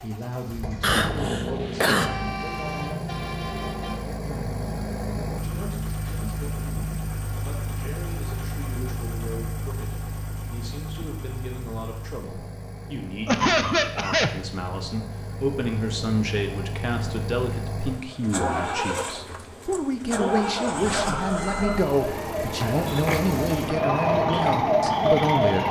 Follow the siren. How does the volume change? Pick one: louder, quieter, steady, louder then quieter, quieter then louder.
louder.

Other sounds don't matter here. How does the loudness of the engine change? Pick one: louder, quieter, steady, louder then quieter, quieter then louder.
quieter then louder.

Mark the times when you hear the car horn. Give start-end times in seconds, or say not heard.
1.9-4.0.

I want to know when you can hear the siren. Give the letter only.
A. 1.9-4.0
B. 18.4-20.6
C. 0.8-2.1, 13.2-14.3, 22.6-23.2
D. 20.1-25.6
D.